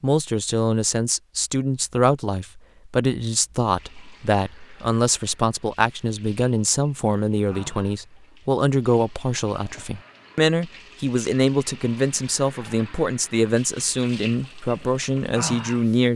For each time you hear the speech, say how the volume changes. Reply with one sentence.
The speech can be heard from 0.0 to 16.1 s, at a steady volume.